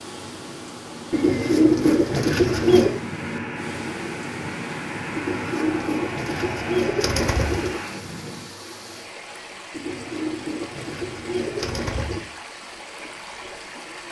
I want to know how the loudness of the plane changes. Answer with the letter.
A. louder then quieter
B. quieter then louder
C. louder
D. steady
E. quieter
D.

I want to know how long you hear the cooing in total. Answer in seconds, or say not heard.
7 s.